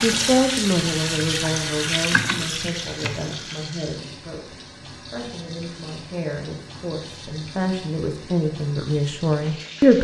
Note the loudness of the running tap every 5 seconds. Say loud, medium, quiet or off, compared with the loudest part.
loud, quiet.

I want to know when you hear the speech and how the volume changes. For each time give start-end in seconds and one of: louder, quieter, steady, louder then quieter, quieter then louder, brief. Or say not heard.
0.0-9.9 quieter then louder.